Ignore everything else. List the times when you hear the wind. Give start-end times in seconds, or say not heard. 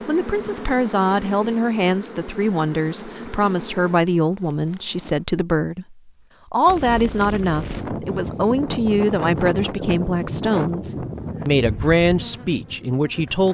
6.7-13.5.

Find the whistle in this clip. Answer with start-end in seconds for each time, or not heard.
not heard.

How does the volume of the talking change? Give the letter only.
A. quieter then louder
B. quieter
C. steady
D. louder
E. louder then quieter
C.